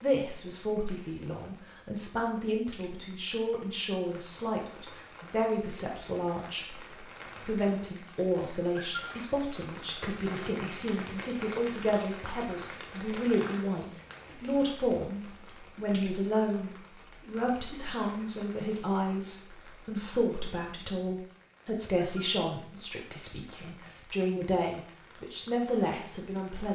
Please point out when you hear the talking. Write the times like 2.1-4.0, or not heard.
0.0-26.6.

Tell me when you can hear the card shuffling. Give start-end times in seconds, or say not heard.
not heard.